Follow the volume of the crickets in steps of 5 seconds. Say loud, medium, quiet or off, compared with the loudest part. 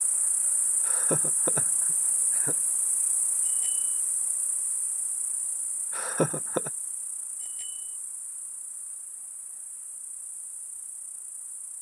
loud, medium, quiet.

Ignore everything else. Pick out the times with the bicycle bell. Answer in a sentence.
You can hear the bicycle bell from 3.4 to 4.0 s and from 7.4 to 8.0 s.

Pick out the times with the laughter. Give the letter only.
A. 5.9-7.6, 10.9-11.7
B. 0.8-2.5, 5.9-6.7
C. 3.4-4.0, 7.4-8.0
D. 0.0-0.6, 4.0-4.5
B.